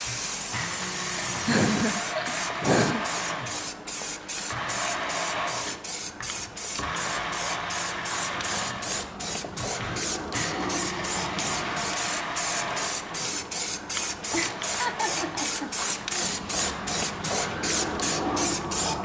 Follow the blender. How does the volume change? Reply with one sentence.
The loudness of the blender goes down.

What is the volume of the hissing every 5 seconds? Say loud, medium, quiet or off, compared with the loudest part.
medium, medium, loud, loud.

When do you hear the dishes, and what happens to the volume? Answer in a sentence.
The dishes can't be heard in this clip.